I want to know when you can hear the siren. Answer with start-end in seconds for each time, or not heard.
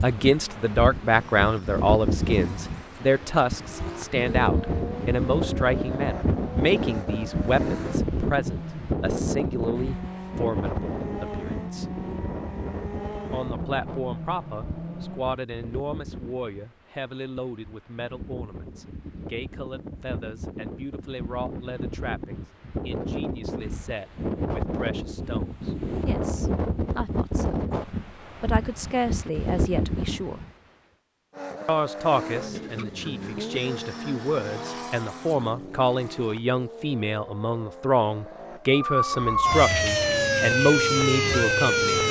38.7-42.0.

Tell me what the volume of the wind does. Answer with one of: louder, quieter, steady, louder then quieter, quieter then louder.
quieter then louder.